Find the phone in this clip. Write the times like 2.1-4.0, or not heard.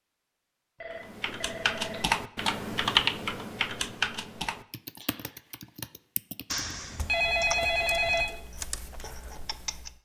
0.8-2.1, 6.5-8.3.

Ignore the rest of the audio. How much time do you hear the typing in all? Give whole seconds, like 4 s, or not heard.
9 s.